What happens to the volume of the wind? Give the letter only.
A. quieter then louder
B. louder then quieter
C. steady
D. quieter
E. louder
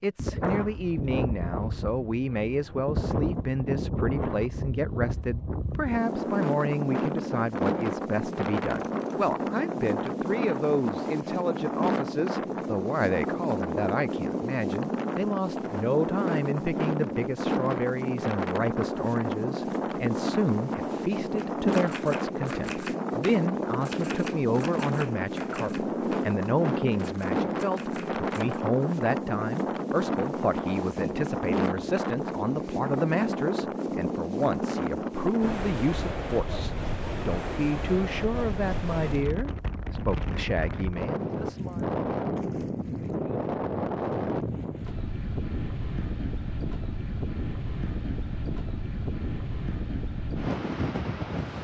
C.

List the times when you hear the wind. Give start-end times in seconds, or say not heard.
0.0-51.6.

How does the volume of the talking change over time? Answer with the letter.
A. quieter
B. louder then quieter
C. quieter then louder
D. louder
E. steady
E.